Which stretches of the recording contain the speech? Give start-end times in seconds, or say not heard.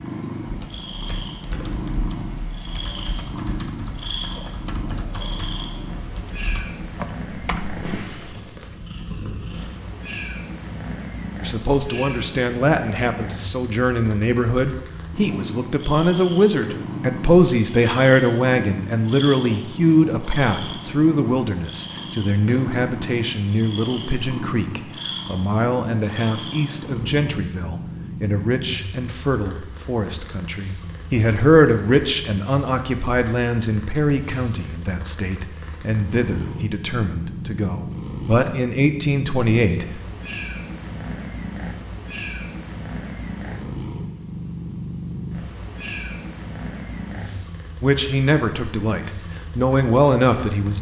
11.4-40.0, 47.8-50.7.